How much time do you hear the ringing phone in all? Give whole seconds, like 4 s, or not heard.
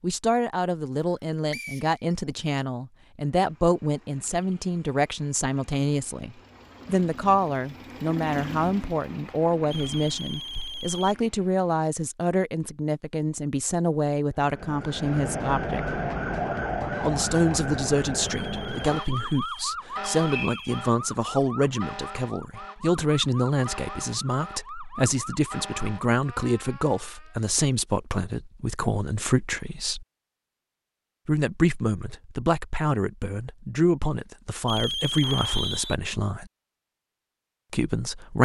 5 s.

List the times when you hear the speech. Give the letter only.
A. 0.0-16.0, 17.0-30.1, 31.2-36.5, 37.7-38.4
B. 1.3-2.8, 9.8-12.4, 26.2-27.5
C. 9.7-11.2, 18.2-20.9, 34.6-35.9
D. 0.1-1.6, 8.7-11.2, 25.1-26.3
A.